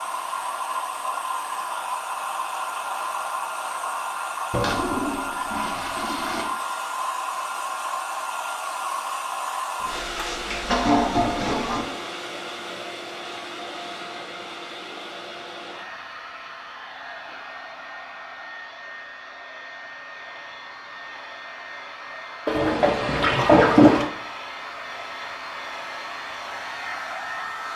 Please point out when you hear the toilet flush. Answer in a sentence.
You can hear the toilet flush from 4.5 to 6.5 s, from 9.8 to 11.8 s and from 22.4 to 24.1 s.